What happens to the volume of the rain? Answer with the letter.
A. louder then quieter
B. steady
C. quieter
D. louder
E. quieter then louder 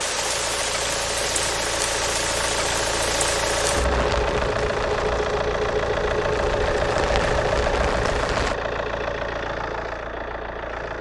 E.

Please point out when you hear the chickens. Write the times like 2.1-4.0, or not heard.
not heard.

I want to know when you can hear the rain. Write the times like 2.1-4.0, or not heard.
0.0-8.6.